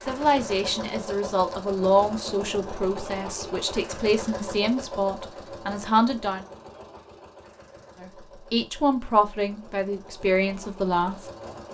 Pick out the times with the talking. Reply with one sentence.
You can hear the talking from 0.0 to 6.5 s and from 8.0 to 11.2 s.